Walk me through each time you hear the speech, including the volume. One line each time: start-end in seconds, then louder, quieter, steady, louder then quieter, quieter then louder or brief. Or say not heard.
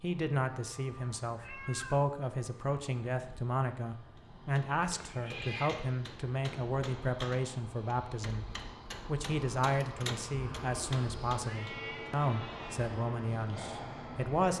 0.0-14.5 steady.